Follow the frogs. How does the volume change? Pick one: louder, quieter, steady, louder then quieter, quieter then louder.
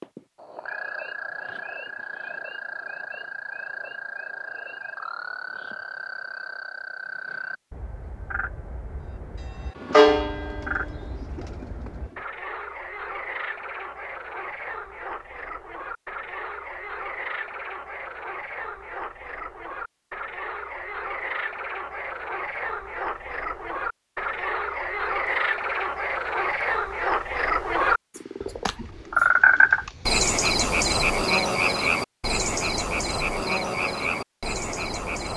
louder.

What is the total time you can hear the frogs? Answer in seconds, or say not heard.
35 s.